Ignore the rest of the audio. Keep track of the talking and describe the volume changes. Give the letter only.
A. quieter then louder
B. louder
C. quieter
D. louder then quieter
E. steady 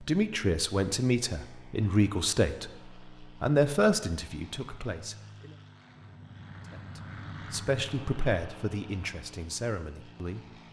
C.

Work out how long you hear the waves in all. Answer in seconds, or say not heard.
not heard.